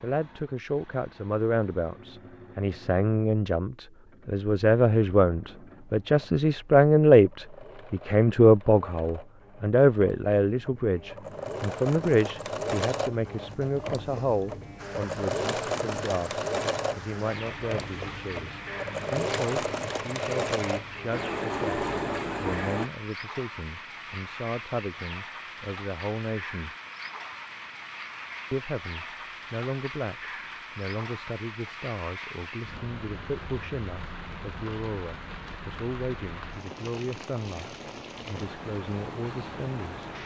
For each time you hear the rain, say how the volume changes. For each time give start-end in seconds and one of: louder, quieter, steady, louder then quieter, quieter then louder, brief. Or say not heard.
14.8-40.2 steady.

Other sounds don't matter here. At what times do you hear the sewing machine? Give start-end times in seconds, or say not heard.
0.0-22.9.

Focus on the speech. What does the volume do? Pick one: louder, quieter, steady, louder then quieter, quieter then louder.
quieter.